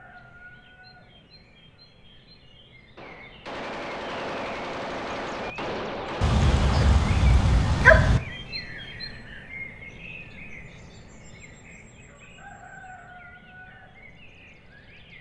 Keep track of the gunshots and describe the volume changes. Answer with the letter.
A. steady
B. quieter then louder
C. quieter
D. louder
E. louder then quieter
A.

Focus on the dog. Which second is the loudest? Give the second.
8 s.